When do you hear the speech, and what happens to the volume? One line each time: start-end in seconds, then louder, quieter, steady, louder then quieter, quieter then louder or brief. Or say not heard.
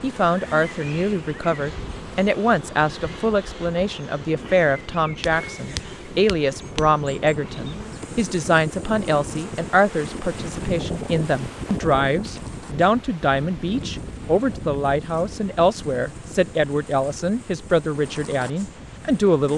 0.0-19.5 steady.